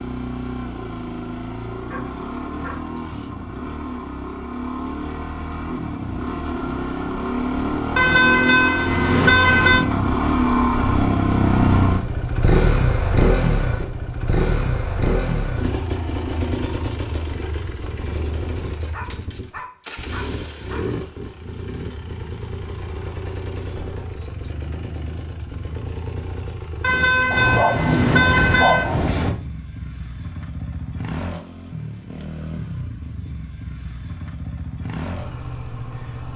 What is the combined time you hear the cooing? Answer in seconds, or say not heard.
not heard.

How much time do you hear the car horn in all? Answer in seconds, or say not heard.
4 s.